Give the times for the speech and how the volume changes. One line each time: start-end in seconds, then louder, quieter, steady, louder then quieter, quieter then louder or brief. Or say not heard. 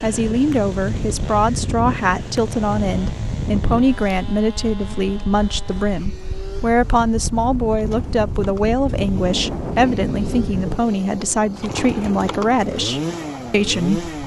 0.0-14.1 steady.